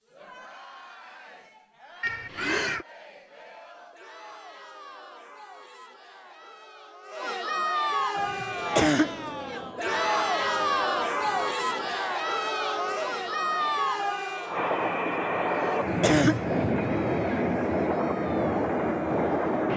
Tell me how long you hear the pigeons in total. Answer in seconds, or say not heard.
not heard.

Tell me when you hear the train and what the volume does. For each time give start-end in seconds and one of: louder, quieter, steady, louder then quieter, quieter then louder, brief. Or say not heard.
8.2-19.7 louder.